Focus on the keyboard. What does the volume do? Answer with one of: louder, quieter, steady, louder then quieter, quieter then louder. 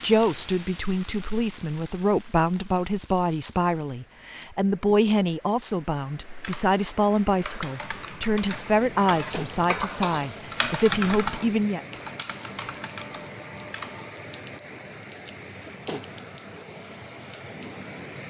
louder then quieter.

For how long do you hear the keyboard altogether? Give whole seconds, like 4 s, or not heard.
8 s.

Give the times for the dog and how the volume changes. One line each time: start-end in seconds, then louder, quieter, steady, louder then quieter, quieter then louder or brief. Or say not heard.
not heard.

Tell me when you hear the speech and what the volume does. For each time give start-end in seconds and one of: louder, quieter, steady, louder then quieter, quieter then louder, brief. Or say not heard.
0.0-11.8 steady.